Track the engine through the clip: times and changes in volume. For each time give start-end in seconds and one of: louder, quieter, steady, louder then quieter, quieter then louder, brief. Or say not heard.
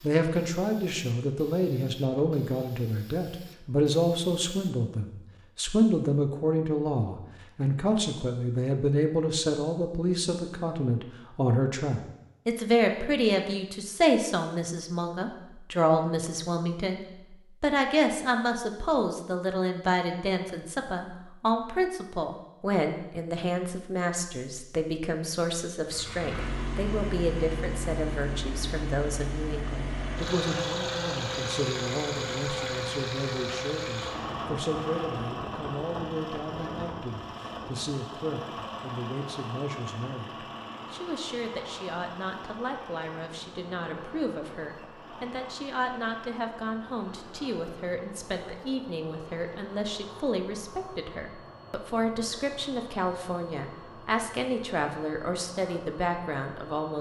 25.8-56.9 quieter.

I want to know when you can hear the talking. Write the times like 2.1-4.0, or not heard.
0.0-17.0, 17.6-56.9.